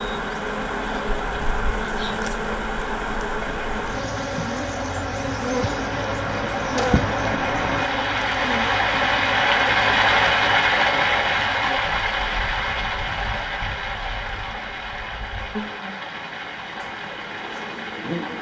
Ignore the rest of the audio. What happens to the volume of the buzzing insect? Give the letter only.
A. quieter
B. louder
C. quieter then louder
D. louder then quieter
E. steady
A.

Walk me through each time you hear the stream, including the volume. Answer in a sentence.
The stream can be heard from 0.0 to 18.3 s, getting louder then quieter.